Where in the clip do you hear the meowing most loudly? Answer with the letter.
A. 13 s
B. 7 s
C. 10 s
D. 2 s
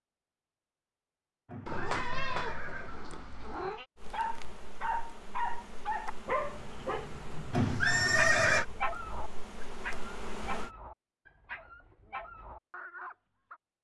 D.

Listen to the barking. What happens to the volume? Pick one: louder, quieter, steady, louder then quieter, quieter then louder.
quieter.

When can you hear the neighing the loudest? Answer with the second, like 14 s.
8 s.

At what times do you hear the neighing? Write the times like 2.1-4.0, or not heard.
1.4-3.0, 7.5-8.7.